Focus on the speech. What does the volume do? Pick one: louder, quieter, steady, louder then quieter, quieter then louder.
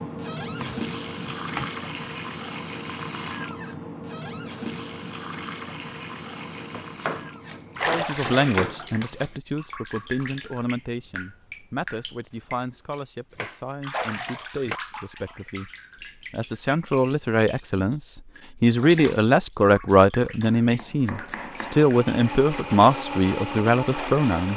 quieter then louder.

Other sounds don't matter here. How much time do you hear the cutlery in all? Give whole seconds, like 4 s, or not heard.
not heard.